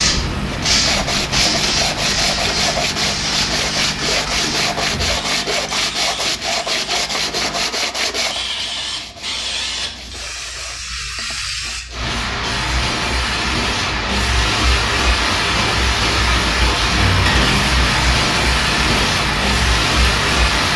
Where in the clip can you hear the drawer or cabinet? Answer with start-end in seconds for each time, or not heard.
not heard.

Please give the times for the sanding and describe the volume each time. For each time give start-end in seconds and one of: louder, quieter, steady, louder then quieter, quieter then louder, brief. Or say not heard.
0.5-12.2 quieter.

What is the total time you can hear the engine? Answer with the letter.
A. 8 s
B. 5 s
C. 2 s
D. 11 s
D.